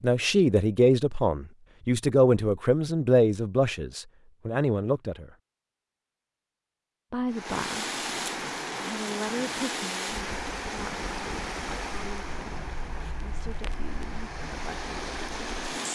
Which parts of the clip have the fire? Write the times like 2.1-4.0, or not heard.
7.5-15.9.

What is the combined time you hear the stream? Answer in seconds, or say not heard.
9 s.